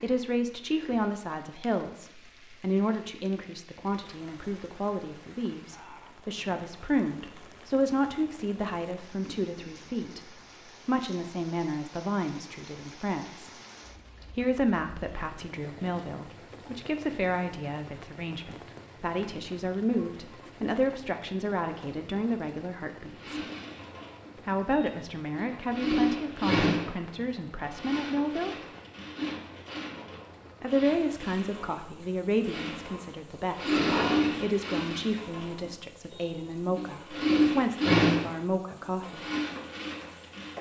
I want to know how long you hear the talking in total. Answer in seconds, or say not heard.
35 s.